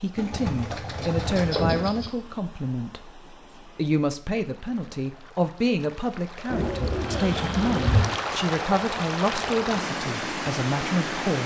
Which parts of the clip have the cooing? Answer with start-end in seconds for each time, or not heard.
0.1-2.1, 6.5-8.2.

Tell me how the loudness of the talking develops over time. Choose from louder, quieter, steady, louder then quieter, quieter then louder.
steady.